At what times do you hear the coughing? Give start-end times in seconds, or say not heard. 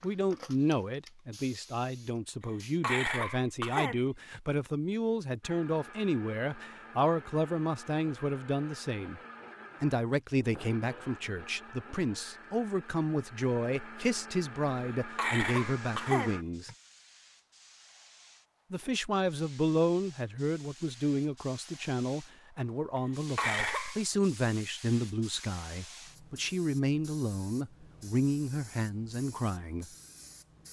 2.8-4.4, 15.2-16.8, 23.4-24.1.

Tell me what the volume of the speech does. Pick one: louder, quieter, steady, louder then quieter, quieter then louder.
steady.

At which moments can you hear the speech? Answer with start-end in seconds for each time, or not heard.
0.0-9.2, 9.8-16.7, 18.7-29.9.